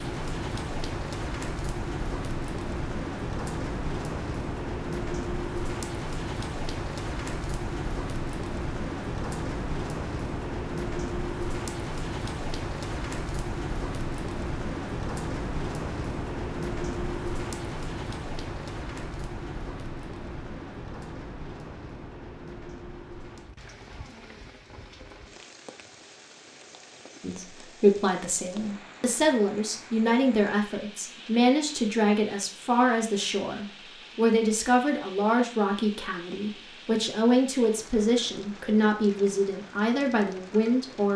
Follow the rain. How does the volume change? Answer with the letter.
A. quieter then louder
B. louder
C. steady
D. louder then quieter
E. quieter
E.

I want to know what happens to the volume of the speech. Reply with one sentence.
The volume of the speech stays about the same.